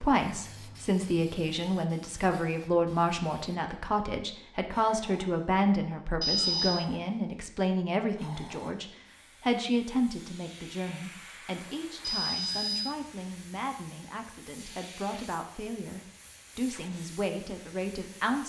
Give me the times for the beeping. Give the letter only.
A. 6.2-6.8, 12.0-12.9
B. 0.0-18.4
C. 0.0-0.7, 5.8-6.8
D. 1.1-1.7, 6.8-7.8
A.